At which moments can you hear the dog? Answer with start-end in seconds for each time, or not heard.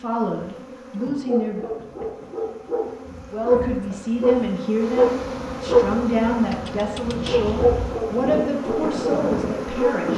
0.9-10.1.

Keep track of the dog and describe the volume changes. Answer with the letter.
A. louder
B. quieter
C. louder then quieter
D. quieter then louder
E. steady
C.